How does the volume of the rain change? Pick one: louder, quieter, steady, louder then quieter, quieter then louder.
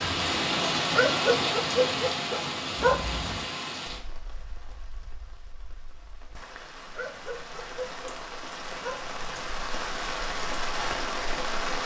quieter then louder.